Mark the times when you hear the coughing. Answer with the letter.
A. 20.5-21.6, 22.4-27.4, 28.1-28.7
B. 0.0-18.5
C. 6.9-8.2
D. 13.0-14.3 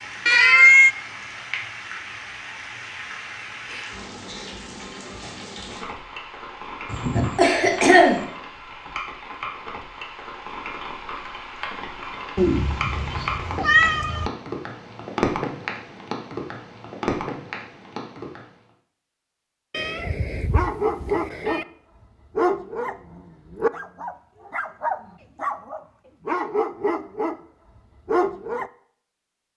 C.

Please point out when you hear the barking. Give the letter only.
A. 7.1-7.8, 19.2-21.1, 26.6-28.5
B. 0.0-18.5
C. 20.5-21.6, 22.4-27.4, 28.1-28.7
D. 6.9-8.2
C.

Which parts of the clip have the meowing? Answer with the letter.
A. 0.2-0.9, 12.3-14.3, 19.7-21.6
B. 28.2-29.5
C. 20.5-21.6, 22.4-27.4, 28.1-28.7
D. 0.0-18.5
A.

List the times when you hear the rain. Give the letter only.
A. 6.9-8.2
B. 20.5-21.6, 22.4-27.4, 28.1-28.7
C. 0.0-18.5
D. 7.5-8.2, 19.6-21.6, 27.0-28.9
C.